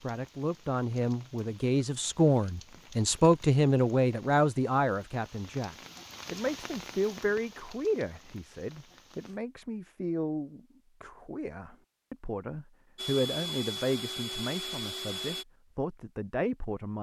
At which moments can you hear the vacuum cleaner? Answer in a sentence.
The vacuum cleaner can be heard from 12.9 to 15.4 s.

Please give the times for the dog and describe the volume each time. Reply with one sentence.
The dog can't be heard in this clip.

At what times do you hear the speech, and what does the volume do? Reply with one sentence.
You can hear the speech from 0.0 to 16.9 s, getting quieter.